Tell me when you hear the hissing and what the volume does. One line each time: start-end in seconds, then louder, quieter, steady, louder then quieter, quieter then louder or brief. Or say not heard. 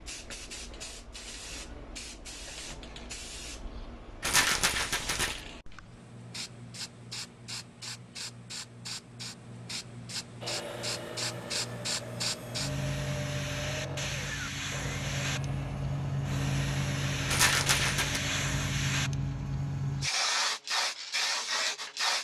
0.0-22.1 louder.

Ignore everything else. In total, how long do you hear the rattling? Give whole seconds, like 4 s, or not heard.
2 s.